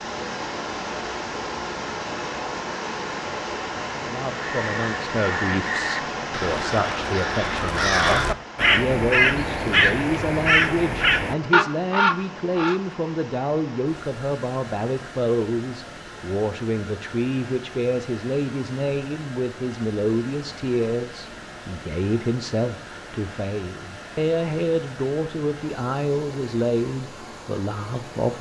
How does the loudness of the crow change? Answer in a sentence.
The volume of the crow goes up.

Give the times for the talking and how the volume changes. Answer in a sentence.
The talking can be heard from 4.0 to 28.3 s, at a steady volume.